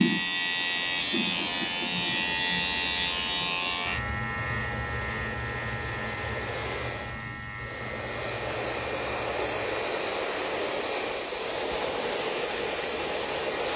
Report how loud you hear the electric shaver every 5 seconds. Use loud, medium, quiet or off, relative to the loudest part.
loud, medium, quiet.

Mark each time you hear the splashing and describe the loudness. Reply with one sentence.
The splashing can't be heard in this clip.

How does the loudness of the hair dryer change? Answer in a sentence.
The loudness of the hair dryer goes up.